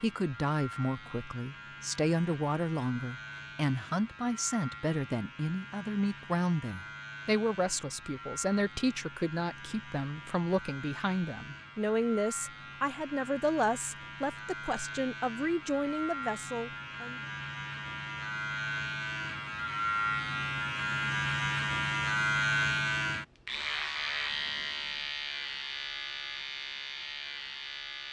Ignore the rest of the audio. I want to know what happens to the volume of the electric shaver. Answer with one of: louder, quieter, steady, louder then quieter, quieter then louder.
louder.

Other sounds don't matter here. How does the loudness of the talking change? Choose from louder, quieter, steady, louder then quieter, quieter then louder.
steady.